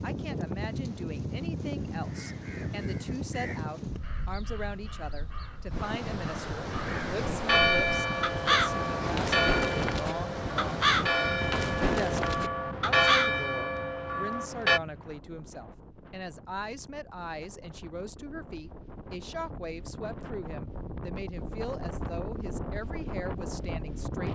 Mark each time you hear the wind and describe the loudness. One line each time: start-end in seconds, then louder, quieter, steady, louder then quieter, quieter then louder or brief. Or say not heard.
0.0-24.2 quieter then louder.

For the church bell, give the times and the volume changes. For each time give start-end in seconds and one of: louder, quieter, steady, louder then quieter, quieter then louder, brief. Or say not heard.
7.2-14.8 steady.